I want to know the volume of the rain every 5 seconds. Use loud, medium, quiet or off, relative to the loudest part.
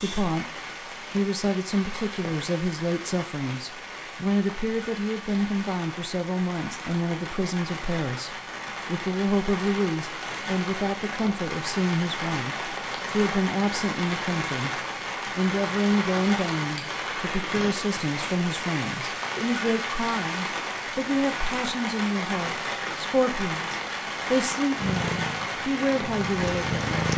medium, medium, loud, loud, loud, loud.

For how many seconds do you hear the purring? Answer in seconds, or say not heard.
2 s.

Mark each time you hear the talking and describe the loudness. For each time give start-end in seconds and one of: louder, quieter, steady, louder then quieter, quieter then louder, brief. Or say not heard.
0.0-26.9 steady.